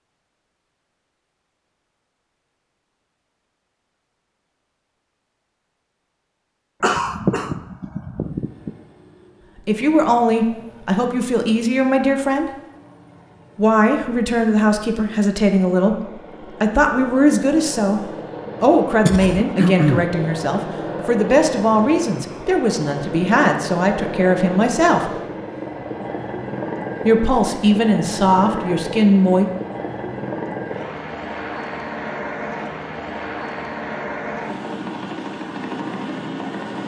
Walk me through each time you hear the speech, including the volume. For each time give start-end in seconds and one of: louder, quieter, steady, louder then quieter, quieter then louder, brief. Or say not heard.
9.7-12.5 brief
13.6-25.1 steady
27.1-29.4 brief.